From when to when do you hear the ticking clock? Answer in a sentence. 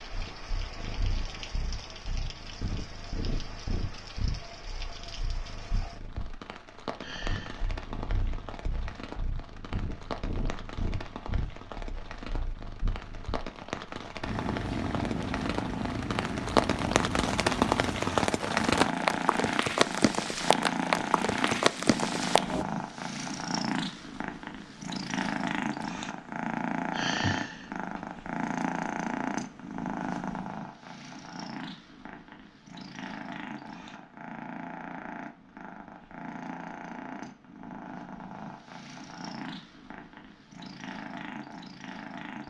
You can't hear the ticking clock here.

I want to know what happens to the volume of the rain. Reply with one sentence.
The loudness of the rain goes up.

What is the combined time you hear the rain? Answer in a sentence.
You can hear the rain for 23 seconds altogether.